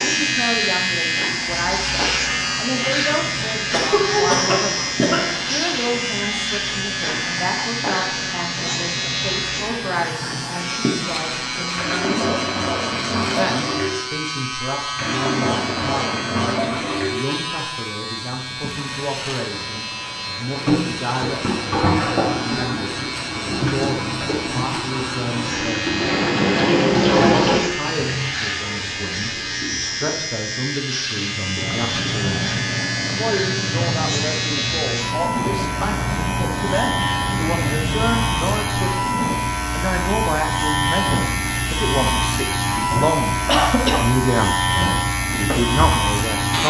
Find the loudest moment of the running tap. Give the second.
27 s.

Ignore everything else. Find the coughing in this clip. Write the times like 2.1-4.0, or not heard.
3.7-5.3, 43.5-44.1.